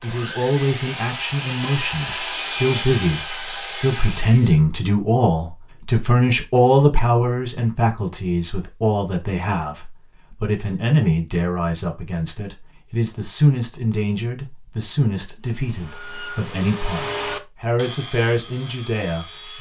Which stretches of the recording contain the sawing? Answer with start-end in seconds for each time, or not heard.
0.0-4.5, 15.4-19.5.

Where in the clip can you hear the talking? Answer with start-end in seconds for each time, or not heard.
0.0-19.5.